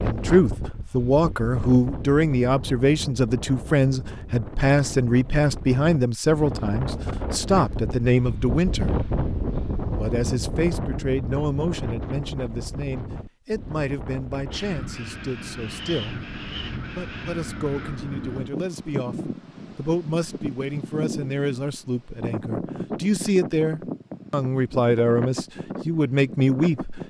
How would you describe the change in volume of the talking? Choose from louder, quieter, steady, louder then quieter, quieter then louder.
quieter then louder.